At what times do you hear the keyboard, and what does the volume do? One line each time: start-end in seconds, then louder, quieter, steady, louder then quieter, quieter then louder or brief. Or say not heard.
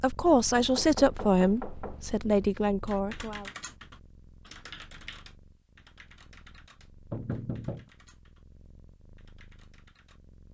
2.9-8.4 quieter
9.2-10.2 brief.